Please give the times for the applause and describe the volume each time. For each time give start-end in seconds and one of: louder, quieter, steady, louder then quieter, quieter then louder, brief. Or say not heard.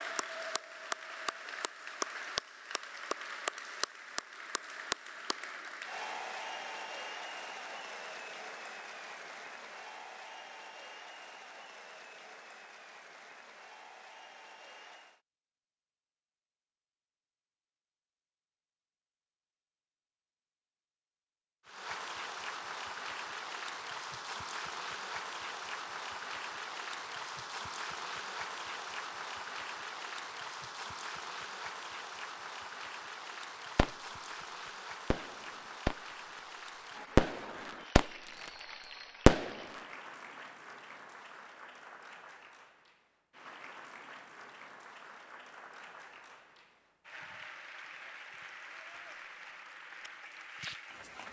0.0-15.2 quieter
21.6-51.2 quieter.